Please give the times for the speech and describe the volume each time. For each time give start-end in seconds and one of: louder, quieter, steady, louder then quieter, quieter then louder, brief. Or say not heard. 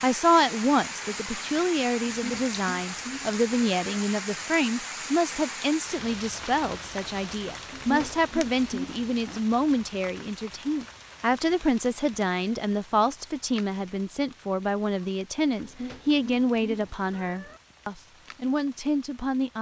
0.0-19.5 steady.